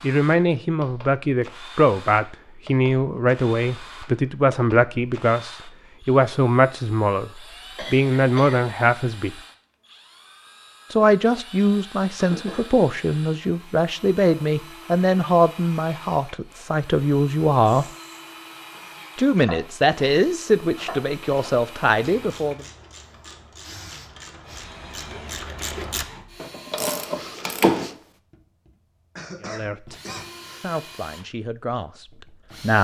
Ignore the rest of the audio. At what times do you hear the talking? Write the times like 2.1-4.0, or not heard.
0.0-9.3, 10.9-17.9, 19.1-22.6, 29.4-29.9, 30.6-32.7.